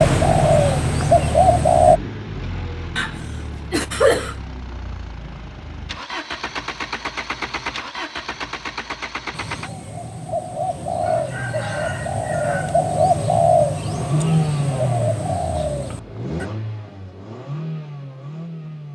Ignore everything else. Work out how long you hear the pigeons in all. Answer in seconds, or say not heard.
9 s.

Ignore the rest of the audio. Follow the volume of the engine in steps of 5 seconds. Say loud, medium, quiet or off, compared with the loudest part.
medium, medium, loud, medium.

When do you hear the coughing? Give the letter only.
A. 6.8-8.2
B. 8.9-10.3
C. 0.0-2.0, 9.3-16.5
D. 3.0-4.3
D.